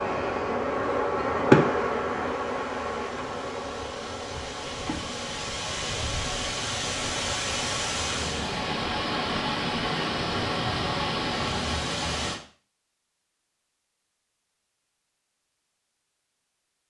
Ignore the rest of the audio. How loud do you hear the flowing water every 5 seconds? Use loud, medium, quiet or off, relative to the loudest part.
quiet, loud, loud, off.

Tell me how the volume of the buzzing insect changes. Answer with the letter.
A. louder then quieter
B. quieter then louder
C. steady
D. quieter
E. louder
D.